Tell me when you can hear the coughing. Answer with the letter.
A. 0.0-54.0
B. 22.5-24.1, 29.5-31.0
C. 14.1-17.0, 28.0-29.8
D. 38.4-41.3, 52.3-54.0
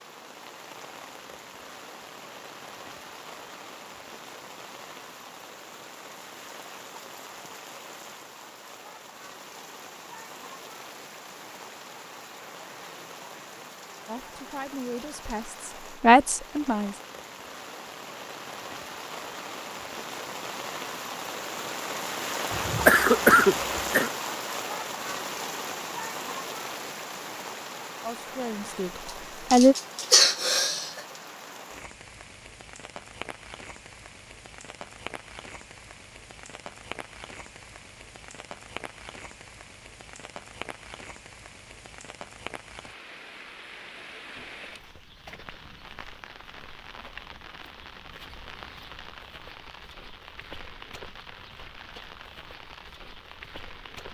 B.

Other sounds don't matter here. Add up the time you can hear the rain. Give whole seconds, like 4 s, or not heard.
54 s.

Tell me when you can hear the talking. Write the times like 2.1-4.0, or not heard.
14.1-17.0, 28.0-29.8.